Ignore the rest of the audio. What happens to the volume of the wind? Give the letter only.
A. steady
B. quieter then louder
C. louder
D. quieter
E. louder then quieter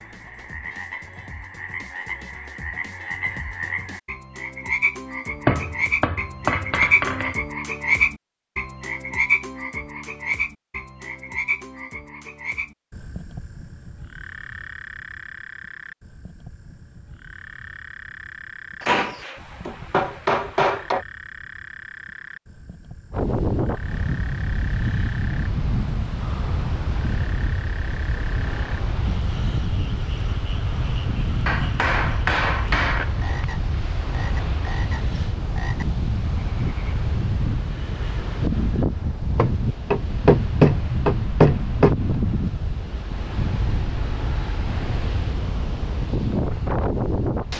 A.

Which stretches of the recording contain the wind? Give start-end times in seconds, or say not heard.
23.1-47.5.